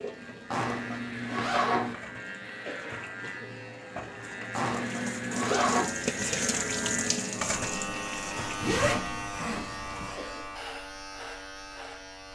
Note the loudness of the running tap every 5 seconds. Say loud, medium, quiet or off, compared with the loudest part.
medium, loud, off.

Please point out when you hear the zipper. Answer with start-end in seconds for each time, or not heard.
0.5-1.9, 4.5-5.8, 8.6-10.2.